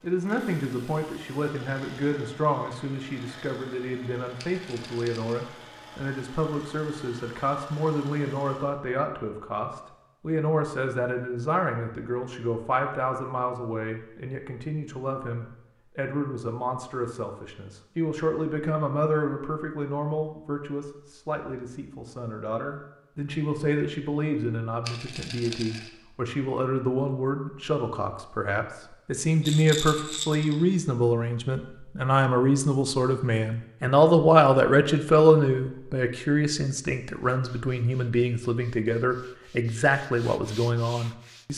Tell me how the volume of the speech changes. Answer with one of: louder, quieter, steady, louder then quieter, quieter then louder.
louder.